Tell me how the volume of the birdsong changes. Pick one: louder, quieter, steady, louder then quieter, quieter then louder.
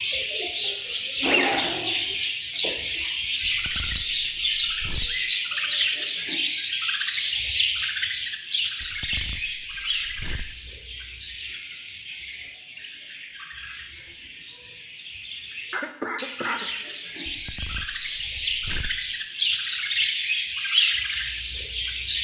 quieter then louder.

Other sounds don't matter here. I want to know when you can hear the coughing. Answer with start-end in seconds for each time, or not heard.
0.7-2.0, 15.7-16.7.